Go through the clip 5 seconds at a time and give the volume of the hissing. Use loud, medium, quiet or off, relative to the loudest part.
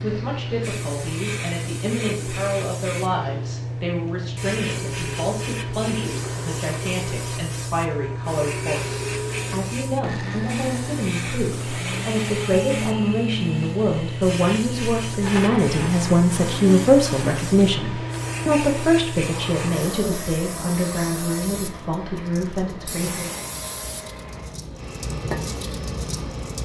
loud, loud, loud, loud, medium, loud.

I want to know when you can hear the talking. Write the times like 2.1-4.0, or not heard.
0.0-23.4.